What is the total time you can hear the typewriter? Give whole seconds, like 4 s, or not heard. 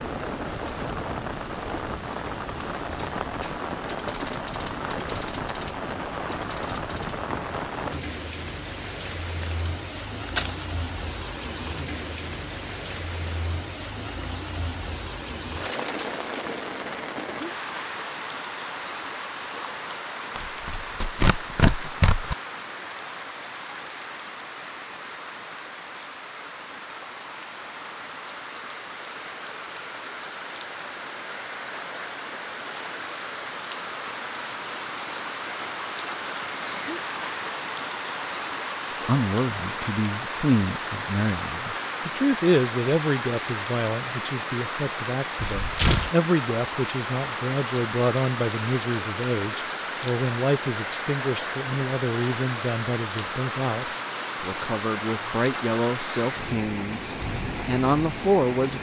4 s.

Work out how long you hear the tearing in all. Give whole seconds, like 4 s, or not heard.
4 s.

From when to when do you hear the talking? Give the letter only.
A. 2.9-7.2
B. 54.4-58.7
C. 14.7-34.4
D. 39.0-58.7
D.